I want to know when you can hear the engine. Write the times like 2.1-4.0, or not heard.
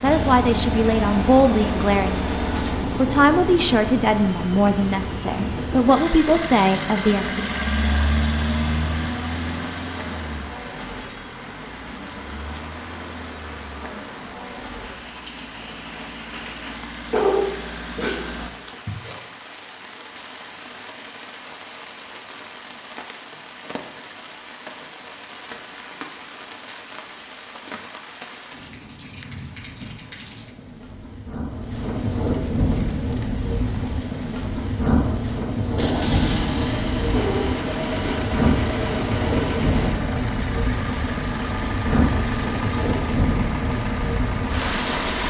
0.0-18.5, 35.7-45.2.